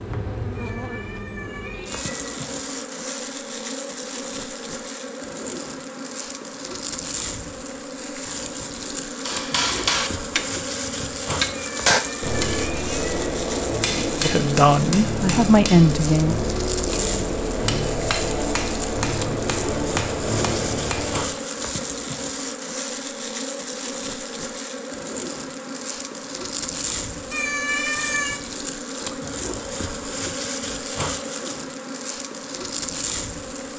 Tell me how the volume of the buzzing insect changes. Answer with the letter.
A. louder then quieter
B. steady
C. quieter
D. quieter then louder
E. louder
B.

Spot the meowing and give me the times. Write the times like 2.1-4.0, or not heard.
0.5-2.3, 11.5-13.2, 27.3-28.4.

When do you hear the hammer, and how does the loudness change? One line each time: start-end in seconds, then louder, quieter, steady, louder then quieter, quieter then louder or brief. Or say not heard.
9.1-21.4 steady.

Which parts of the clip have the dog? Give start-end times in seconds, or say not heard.
not heard.